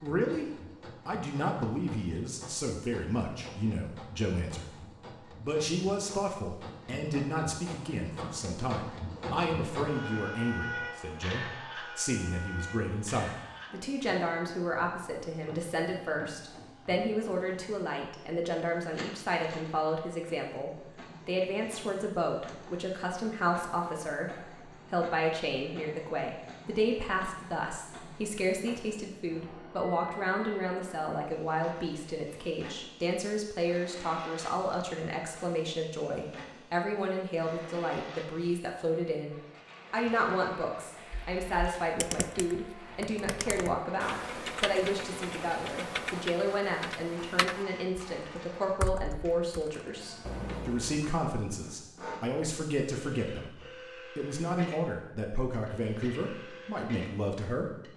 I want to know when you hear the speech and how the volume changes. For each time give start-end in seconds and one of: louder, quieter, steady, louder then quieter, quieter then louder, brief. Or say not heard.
0.0-57.9 steady.